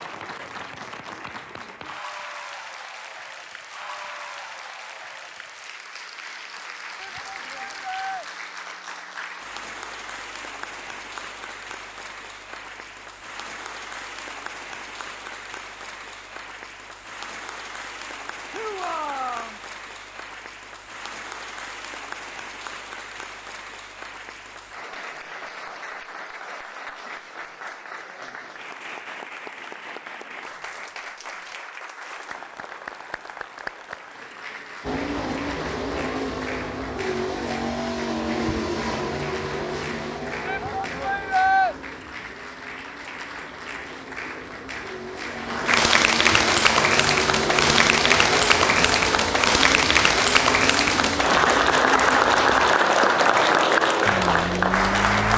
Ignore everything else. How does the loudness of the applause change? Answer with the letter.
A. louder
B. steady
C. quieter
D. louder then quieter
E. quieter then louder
A.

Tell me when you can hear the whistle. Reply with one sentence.
You can't hear the whistle here.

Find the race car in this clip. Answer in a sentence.
You can hear the race car from 34.8 to 55.3 s.